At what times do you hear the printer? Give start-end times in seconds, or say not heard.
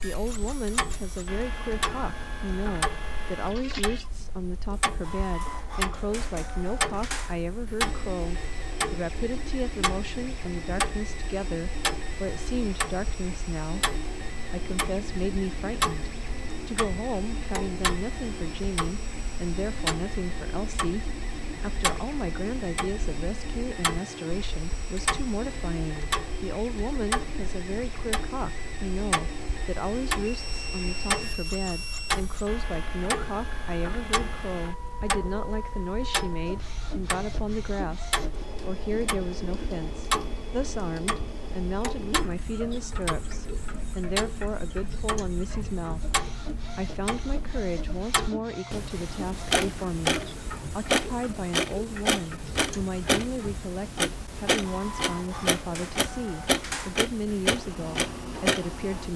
0.0-59.1.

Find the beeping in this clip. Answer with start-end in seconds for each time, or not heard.
30.2-32.1.